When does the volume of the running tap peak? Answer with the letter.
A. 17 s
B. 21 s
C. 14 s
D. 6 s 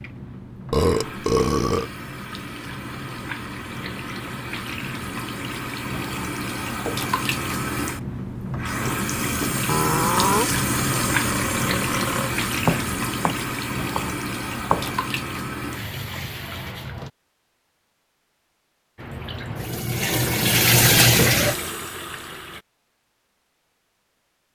B.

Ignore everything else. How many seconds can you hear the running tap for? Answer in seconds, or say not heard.
21 s.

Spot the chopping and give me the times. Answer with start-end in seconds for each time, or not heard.
12.6-14.9.